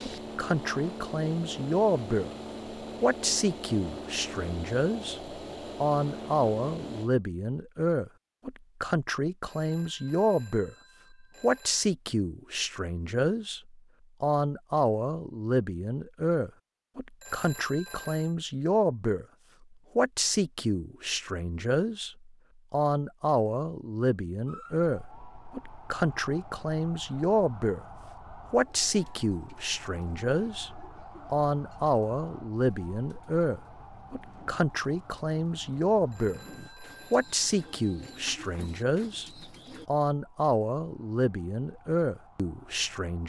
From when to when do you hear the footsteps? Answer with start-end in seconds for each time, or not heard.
not heard.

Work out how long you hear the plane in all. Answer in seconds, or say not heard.
7 s.